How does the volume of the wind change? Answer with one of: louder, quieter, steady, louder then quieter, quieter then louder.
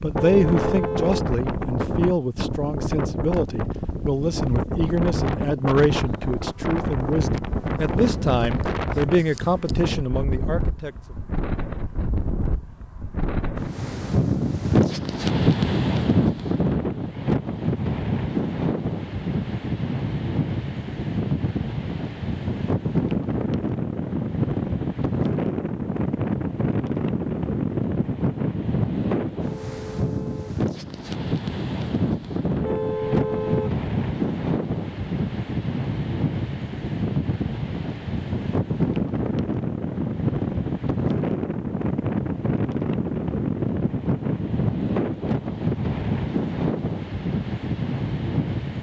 steady.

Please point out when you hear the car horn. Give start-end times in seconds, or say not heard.
0.1-1.2, 29.4-30.6, 32.6-33.8.